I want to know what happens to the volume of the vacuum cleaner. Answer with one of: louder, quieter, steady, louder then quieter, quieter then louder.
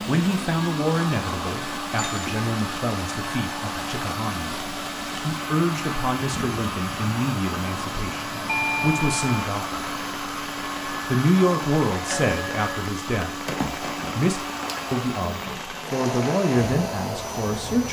steady.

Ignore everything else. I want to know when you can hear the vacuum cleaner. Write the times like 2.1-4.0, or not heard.
0.0-17.8.